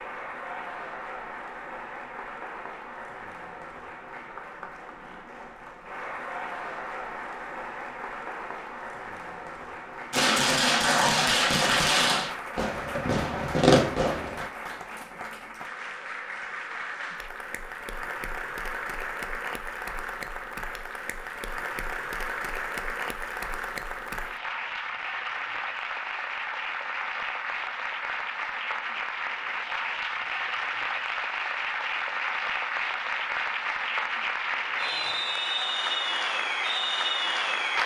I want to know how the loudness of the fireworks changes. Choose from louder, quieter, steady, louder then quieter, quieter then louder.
quieter then louder.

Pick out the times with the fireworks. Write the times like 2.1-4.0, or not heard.
10.1-14.4.